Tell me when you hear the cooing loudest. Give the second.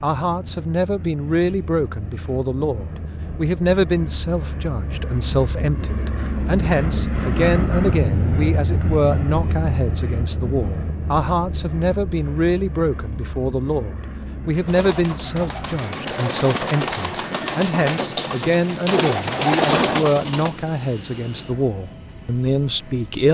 20 s.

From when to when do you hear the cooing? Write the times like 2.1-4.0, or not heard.
14.7-20.5.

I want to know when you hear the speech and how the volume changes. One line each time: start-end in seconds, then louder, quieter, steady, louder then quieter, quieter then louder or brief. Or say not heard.
0.0-23.2 steady.